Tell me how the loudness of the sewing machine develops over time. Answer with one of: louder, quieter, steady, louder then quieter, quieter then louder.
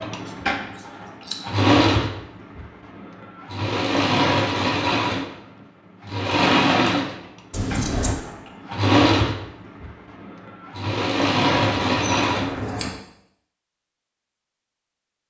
steady.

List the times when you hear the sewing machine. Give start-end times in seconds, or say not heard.
0.0-12.6.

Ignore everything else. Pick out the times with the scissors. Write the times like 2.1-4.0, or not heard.
0.2-1.4, 7.5-8.2, 11.7-12.9.